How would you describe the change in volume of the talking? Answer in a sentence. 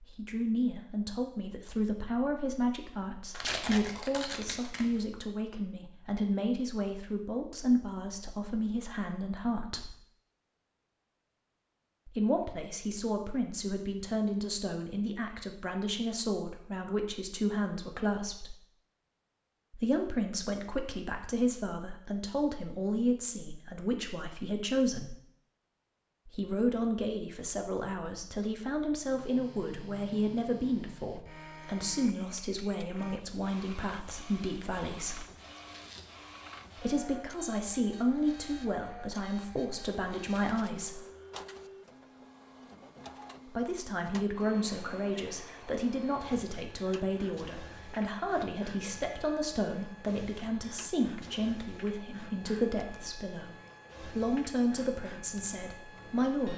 The loudness of the talking stays about the same.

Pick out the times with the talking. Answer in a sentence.
The talking can be heard from 0.0 to 9.9 s, from 12.1 to 18.6 s, from 19.7 to 25.1 s, from 26.2 to 35.2 s, from 36.8 to 41.0 s and from 43.5 to 56.5 s.